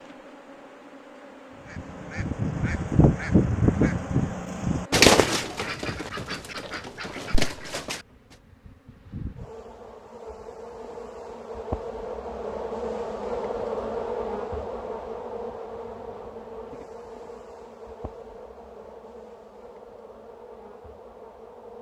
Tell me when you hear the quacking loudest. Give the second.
5 s.